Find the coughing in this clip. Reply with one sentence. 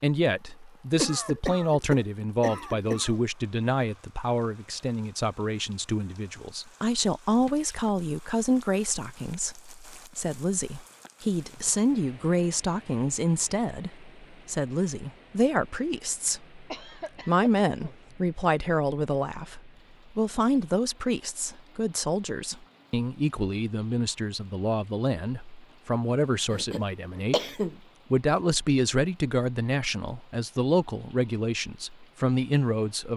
You can hear the coughing from 0.9 to 3.1 s, from 16.7 to 17.9 s and from 26.5 to 27.8 s.